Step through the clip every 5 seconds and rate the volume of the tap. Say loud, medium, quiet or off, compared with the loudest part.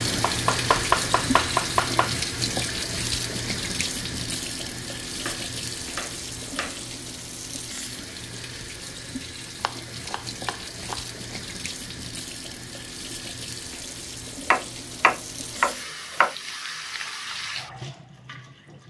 loud, medium, medium, medium.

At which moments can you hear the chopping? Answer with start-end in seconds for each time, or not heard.
0.1-2.1, 5.1-6.8, 9.6-11.3, 14.5-16.4.